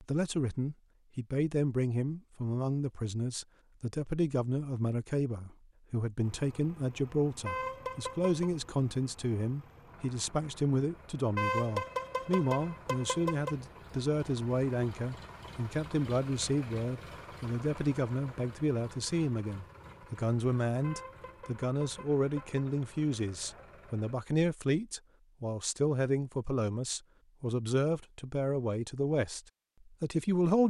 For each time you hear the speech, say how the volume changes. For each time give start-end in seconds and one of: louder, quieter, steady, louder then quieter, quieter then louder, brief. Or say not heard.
0.0-30.6 steady.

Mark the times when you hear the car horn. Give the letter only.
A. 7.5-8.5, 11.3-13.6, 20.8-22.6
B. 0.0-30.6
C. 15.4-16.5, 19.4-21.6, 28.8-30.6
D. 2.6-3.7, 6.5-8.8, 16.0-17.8
A.